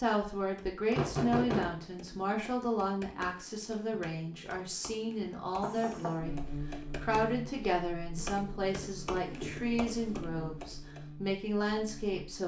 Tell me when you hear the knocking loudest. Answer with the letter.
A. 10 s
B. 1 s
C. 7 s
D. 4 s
B.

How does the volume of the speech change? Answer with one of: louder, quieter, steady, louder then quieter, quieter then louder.
steady.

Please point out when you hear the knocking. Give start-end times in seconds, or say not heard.
0.9-1.8, 5.6-6.2, 9.2-9.7.